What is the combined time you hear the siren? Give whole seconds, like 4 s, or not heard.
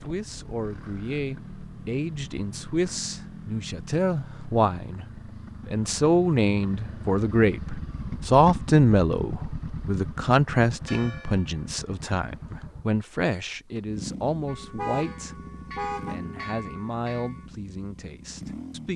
not heard.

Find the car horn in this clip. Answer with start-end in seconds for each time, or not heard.
14.8-16.1.